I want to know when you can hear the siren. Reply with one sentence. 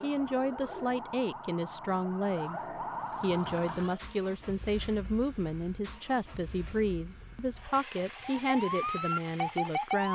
You can hear the siren from 0.0 to 4.0 s and from 8.2 to 10.0 s.